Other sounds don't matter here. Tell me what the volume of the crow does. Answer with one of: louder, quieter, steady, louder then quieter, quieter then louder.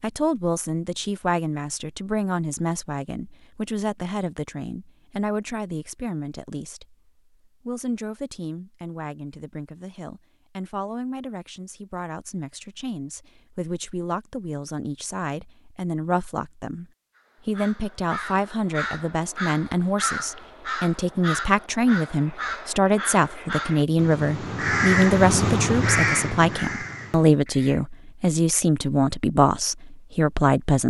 louder.